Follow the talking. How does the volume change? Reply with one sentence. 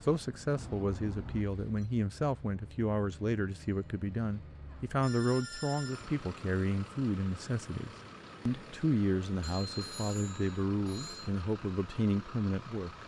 The loudness of the talking stays about the same.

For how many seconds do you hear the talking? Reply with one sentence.
You can hear the talking for 13 seconds altogether.